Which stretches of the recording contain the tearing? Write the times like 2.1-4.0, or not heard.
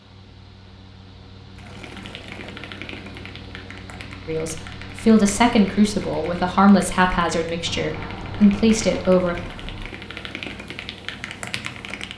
1.6-2.6.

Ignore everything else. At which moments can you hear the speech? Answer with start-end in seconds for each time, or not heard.
4.2-9.3.